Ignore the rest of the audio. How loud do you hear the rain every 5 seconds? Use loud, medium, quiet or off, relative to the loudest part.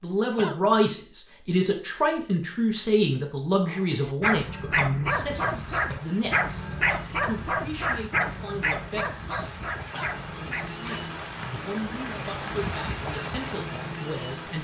off, medium, loud.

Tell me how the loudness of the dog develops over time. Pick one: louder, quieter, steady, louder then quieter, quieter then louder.
quieter.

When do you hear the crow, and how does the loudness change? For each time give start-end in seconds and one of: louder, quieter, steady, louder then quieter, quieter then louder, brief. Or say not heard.
not heard.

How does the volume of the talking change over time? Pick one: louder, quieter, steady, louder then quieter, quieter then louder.
quieter.